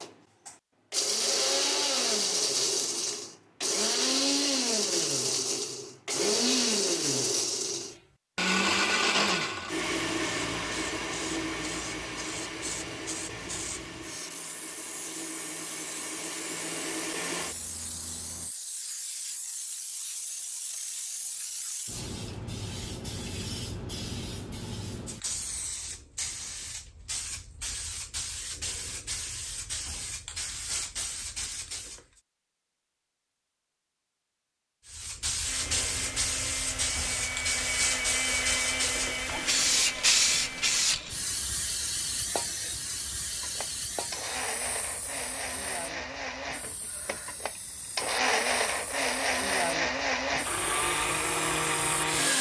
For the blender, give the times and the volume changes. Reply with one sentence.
The blender can be heard from 0.0 to 18.5 s, getting quieter; from 35.4 to 40.9 s, getting louder then quieter; and from 43.4 to 52.3 s, getting louder.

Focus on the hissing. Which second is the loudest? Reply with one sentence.
The loudest moment of the hissing is at 40 seconds.